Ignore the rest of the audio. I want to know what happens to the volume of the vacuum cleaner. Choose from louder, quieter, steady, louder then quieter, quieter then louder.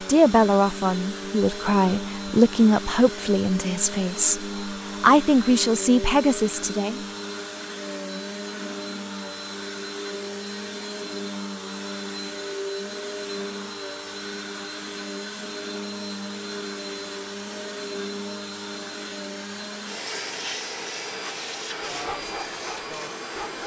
steady.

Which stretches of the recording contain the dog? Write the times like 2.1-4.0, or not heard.
21.8-23.6.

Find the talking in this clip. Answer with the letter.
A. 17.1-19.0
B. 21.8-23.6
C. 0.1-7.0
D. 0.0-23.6
C.